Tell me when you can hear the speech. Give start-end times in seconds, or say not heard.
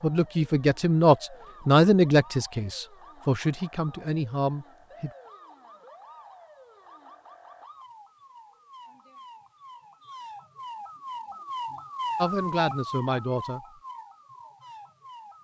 0.0-5.1, 12.2-13.6.